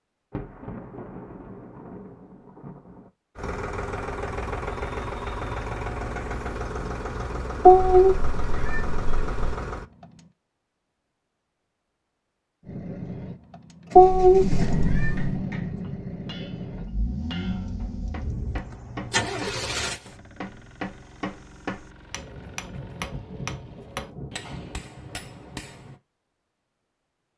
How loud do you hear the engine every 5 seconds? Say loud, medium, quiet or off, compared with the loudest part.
loud, loud, loud, loud, quiet, off.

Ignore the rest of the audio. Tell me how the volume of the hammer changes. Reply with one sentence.
The volume of the hammer goes up.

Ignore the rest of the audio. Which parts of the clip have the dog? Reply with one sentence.
You can't hear the dog here.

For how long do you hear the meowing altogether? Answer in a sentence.
You can hear the meowing for 3 seconds altogether.